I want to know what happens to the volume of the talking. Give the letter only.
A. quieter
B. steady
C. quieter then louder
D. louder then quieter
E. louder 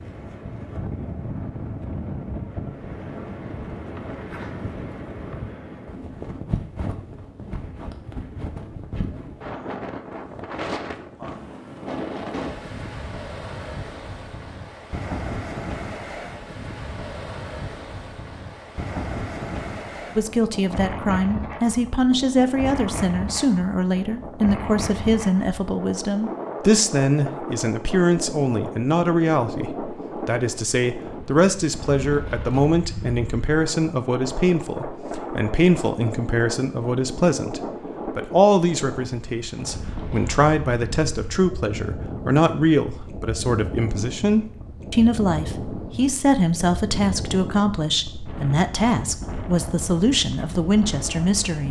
B.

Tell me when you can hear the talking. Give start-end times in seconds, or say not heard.
20.1-51.6.